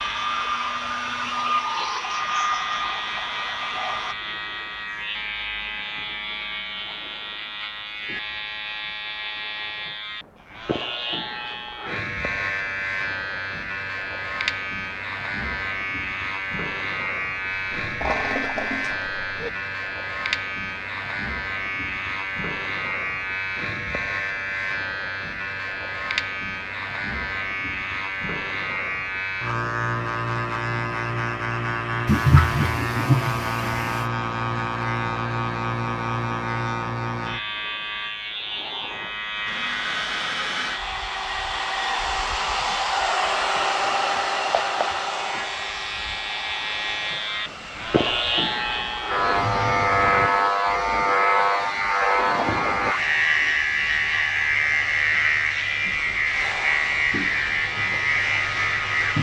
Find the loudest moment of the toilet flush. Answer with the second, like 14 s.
33 s.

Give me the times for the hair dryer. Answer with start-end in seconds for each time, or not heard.
0.0-4.2, 39.5-59.1.